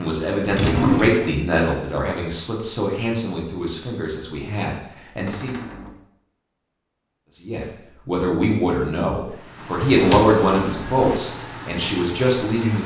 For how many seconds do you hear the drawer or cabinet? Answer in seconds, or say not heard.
3 s.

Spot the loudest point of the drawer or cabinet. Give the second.
1 s.